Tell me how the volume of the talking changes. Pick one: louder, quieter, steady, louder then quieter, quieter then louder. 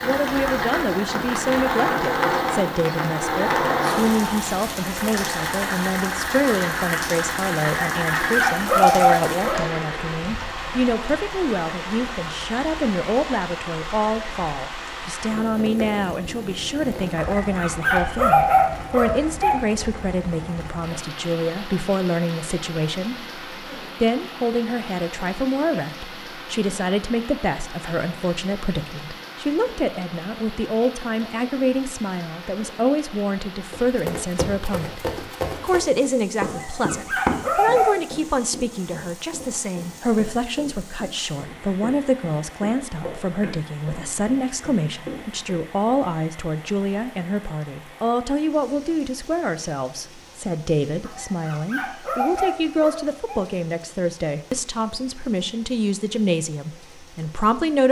steady.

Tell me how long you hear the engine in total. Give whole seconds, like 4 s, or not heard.
10 s.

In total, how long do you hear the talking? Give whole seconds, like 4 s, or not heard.
57 s.